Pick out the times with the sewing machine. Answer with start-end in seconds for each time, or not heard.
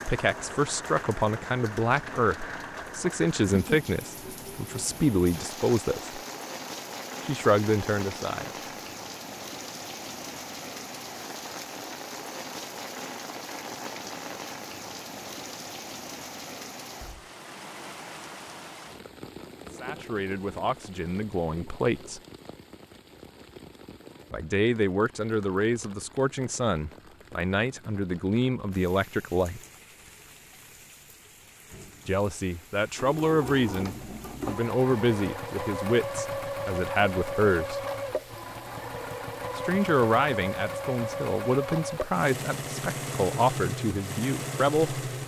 33.0-45.2.